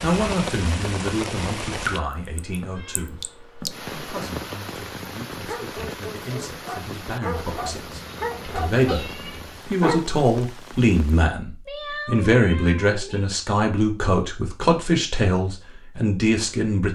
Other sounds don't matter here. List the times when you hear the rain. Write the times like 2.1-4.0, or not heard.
0.0-11.2.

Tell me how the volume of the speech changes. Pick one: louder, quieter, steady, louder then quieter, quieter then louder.
quieter then louder.